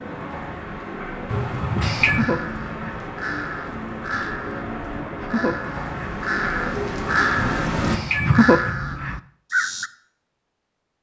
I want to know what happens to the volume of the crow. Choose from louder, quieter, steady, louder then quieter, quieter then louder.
louder.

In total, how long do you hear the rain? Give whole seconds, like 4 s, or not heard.
8 s.